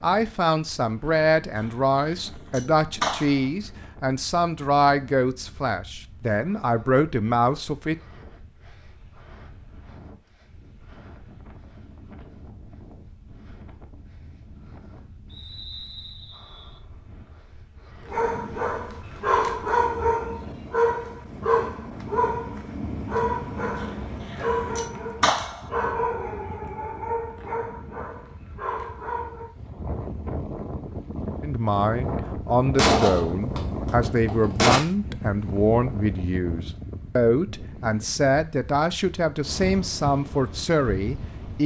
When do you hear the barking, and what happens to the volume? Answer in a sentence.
The barking can be heard from 18.1 to 29.5 s, getting quieter.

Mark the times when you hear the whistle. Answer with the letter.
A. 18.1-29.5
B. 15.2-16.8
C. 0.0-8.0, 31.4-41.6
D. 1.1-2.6
B.